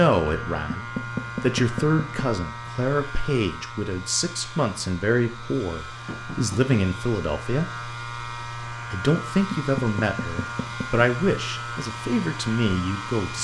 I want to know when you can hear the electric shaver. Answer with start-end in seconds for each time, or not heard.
0.0-13.4.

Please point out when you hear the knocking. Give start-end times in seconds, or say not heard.
0.7-2.2, 6.0-6.8, 9.5-11.1.